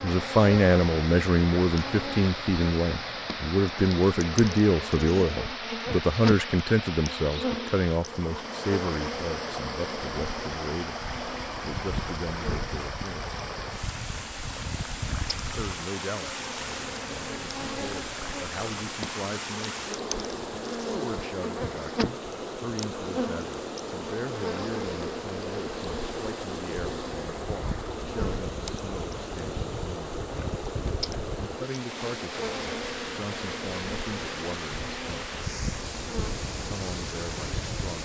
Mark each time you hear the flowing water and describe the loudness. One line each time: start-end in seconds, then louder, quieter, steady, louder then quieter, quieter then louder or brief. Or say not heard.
0.0-38.0 steady.